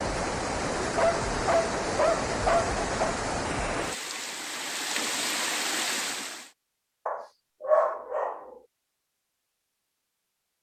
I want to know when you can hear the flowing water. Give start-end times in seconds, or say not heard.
0.0-6.5.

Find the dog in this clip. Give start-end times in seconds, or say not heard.
0.8-3.1, 7.0-8.4.